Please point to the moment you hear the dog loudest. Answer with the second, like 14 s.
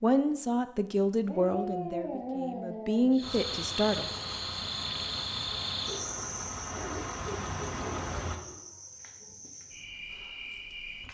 2 s.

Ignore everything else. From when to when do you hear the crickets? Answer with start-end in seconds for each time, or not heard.
3.1-11.0.